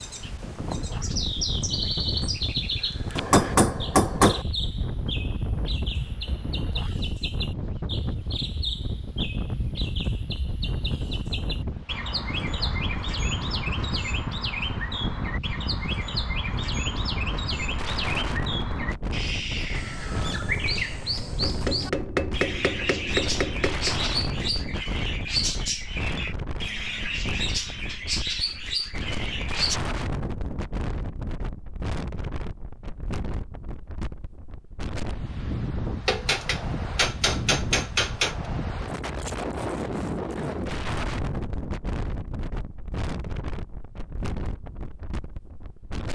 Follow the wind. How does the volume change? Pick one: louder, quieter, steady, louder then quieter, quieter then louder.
steady.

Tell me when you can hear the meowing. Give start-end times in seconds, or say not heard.
not heard.